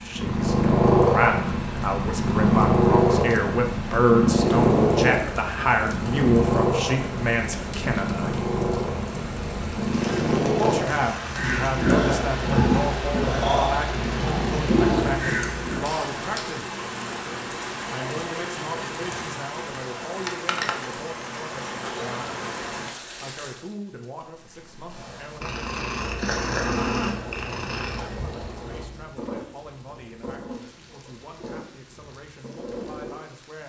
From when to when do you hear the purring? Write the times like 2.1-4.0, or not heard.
0.1-15.9, 24.2-33.2.